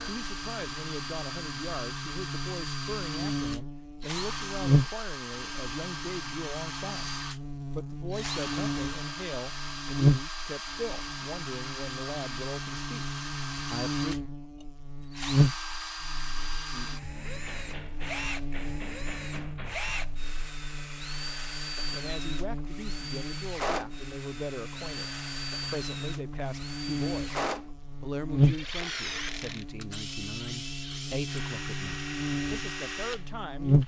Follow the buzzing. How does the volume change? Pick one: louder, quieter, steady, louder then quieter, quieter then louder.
quieter then louder.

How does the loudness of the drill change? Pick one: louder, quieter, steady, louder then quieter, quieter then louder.
steady.